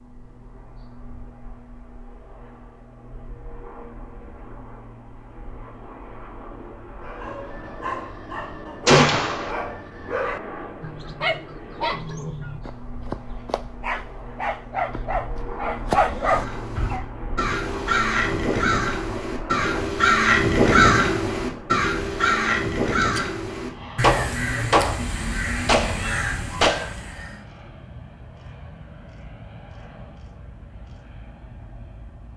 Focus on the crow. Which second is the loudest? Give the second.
21 s.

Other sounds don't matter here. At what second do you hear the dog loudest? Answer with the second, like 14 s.
16 s.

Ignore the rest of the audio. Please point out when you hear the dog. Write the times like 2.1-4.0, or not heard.
7.0-17.1.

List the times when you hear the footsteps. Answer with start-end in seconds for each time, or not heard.
not heard.